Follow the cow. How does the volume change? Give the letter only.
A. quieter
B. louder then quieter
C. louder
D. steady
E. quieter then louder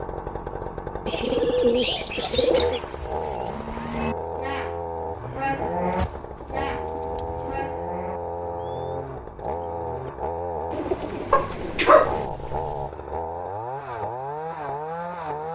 B.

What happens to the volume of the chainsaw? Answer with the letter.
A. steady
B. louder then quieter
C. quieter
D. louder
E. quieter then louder
A.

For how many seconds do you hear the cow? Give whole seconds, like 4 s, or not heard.
8 s.